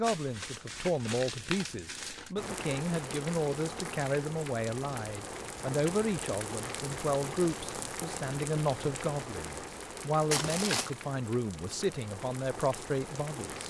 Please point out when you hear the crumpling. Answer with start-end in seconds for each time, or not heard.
0.0-2.3, 6.0-6.5, 10.3-10.9.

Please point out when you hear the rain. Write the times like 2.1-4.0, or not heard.
2.4-13.6.